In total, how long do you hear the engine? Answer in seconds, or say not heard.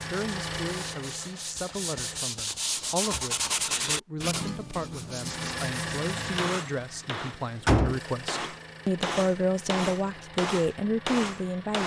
9 s.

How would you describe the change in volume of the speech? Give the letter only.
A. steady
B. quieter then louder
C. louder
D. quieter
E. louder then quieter
C.